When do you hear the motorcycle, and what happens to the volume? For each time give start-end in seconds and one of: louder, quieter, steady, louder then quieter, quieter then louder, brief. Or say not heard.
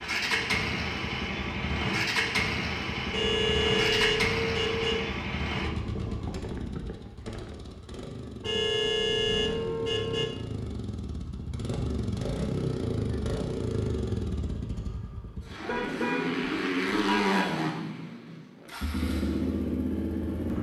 0.0-20.5 quieter then louder.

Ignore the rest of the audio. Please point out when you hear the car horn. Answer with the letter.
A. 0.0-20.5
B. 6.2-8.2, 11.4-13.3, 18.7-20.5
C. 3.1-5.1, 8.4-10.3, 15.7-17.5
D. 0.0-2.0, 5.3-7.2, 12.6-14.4
C.